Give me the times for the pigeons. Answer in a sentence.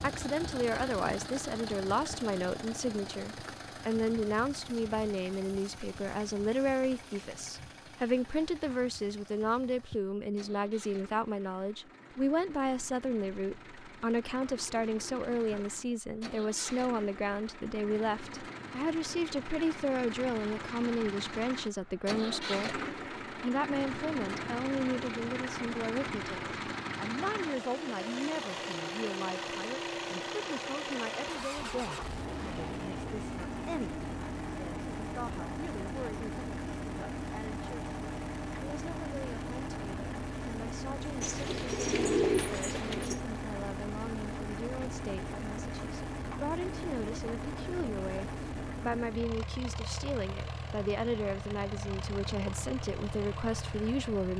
You can hear the pigeons from 14.4 to 15.9 s and from 41.2 to 43.2 s.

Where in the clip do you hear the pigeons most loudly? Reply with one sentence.
The loudest moment of the pigeons is at 42 seconds.